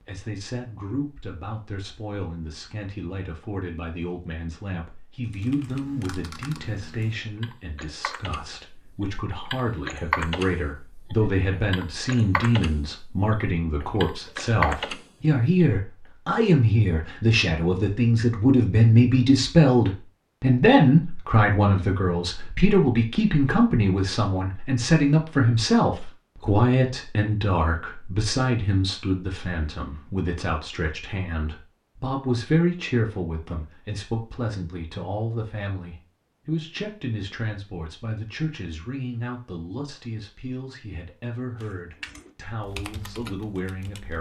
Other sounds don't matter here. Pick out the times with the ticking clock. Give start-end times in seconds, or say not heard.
not heard.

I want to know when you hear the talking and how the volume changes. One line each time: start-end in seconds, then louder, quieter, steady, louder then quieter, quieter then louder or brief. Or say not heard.
0.0-44.1 louder then quieter.